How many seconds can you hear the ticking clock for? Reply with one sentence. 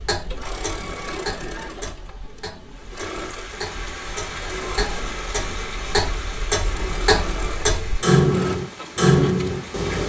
You can hear the ticking clock for 10 seconds altogether.